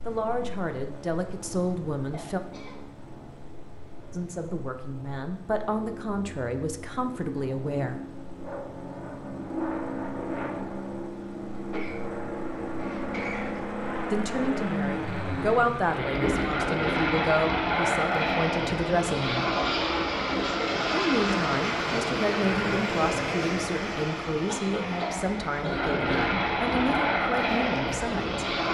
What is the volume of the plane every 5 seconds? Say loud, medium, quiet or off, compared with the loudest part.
quiet, medium, medium, loud, loud, loud.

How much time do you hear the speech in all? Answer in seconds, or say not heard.
19 s.